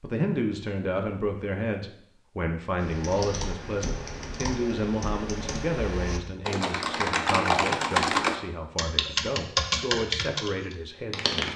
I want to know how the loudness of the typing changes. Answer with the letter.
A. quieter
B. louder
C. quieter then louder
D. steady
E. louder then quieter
B.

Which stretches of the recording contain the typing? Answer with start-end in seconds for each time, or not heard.
2.8-11.5.